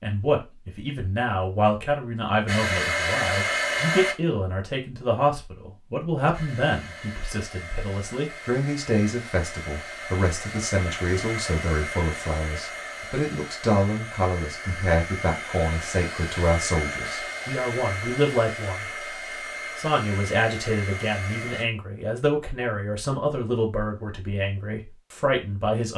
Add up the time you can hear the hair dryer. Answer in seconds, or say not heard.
17 s.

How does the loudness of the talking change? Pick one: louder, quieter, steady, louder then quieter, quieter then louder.
steady.